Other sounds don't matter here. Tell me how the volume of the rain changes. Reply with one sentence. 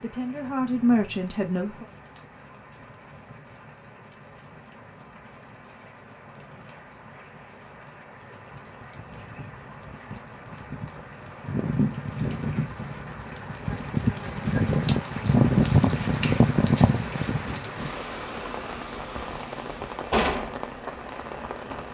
The loudness of the rain goes up, then down.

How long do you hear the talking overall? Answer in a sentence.
You can hear the talking for 2 seconds altogether.